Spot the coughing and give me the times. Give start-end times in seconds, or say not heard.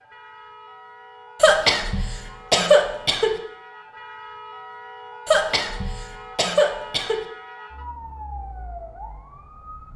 1.4-3.4, 5.2-7.2.